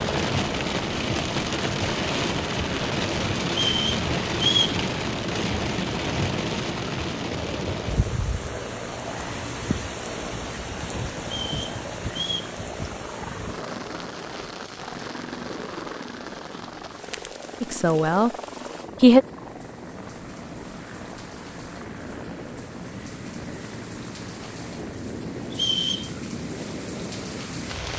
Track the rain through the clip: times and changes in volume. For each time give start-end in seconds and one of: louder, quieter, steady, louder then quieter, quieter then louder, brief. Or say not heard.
0.0-27.9 quieter then louder.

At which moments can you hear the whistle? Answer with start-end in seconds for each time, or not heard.
3.5-4.8, 11.2-12.6, 25.5-26.1.